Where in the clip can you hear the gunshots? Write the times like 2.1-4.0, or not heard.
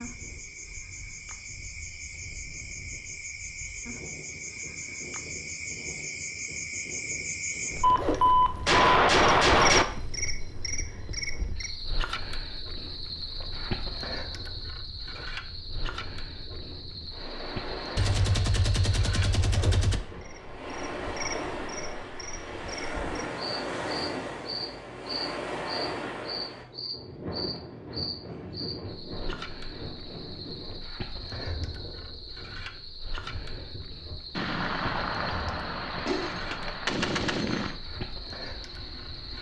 7.8-9.8, 17.9-20.0, 34.4-37.8.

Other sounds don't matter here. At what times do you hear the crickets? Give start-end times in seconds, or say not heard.
0.0-39.3.